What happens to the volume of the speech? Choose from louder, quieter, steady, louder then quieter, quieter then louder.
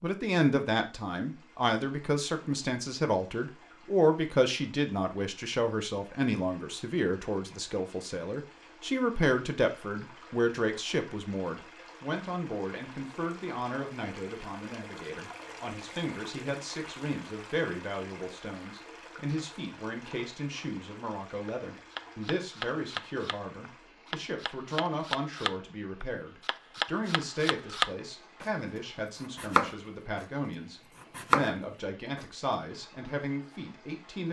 quieter.